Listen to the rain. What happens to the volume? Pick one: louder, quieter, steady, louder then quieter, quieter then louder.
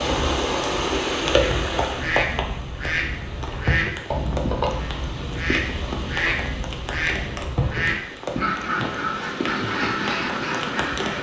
quieter.